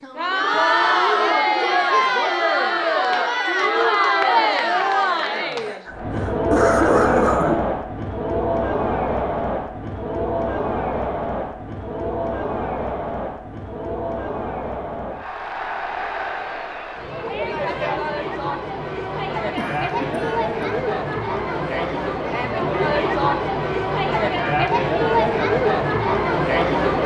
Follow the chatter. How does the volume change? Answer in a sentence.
The volume of the chatter goes down, then up.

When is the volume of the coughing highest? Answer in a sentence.
The volume of the coughing peaks at 7 seconds.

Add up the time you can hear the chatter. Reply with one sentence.
You can hear the chatter for 27 seconds altogether.